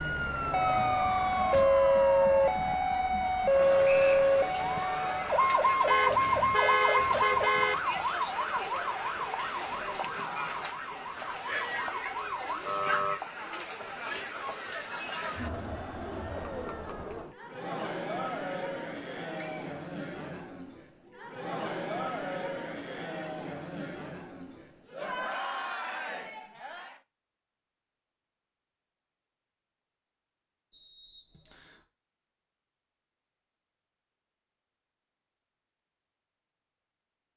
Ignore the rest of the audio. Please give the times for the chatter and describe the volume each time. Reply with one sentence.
You can hear the chatter from 0.1 to 27.0 s, at a steady volume.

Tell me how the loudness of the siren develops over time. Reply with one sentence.
The loudness of the siren goes down.